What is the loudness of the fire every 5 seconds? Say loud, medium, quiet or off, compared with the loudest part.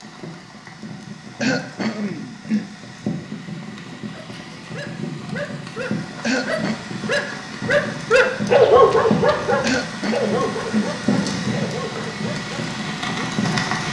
medium, loud, loud.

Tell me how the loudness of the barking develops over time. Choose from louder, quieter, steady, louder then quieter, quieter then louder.
louder then quieter.